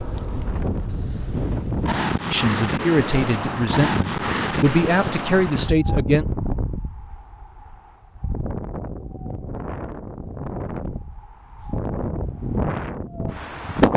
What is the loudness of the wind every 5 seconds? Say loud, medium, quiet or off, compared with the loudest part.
loud, medium, loud.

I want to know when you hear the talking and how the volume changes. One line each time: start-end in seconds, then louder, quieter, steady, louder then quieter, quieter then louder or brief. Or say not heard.
2.2-6.2 quieter then louder.